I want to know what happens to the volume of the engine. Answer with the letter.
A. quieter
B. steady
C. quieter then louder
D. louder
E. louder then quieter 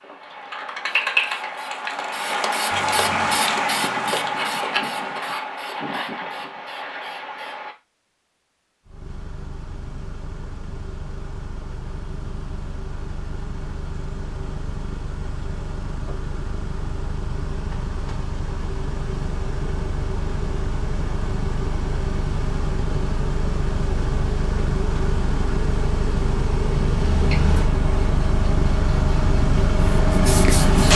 D.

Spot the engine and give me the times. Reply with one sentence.
The engine can be heard from 8.8 to 30.9 s.